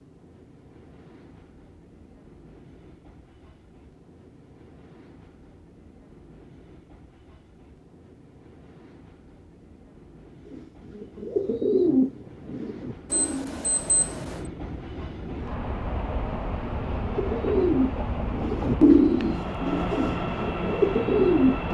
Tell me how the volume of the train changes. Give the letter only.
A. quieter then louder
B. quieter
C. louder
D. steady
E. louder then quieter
C.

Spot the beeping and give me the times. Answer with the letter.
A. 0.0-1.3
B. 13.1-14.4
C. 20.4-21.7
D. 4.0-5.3
B.